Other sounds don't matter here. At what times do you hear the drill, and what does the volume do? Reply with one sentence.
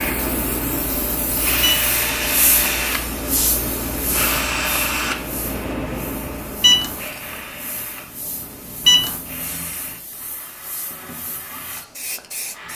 You can hear the drill from 0.0 to 12.7 s, getting quieter.